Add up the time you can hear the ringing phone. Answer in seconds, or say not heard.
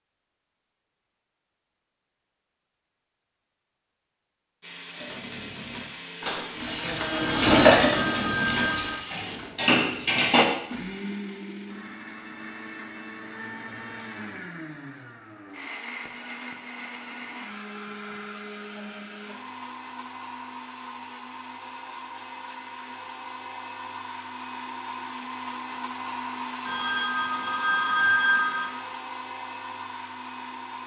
4 s.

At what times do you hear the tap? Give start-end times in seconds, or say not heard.
6.5-9.0.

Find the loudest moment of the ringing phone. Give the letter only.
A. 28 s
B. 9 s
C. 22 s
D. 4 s
A.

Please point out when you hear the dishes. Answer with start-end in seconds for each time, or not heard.
5.0-10.4.